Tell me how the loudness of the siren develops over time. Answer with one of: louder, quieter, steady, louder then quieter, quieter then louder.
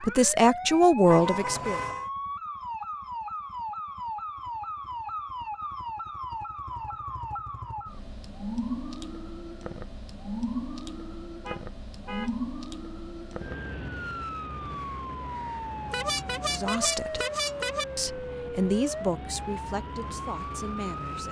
steady.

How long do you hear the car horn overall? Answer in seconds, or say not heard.
4 s.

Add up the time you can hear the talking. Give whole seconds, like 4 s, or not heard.
6 s.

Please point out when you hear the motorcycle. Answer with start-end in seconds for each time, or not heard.
not heard.